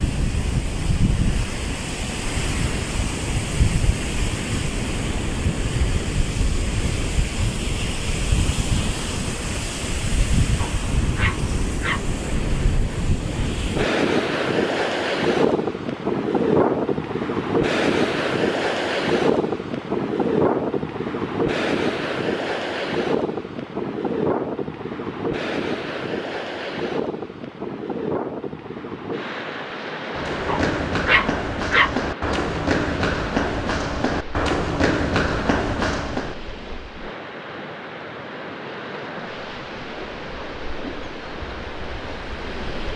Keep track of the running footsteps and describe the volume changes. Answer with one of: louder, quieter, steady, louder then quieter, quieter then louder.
steady.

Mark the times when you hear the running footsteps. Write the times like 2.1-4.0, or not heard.
30.1-36.4.